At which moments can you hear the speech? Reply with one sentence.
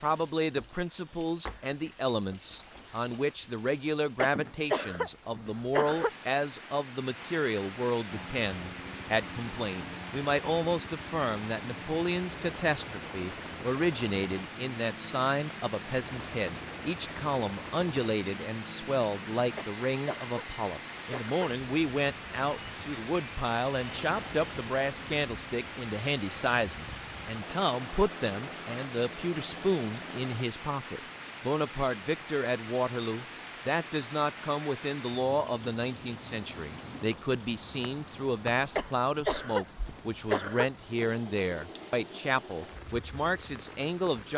The speech can be heard from 0.0 to 44.3 s.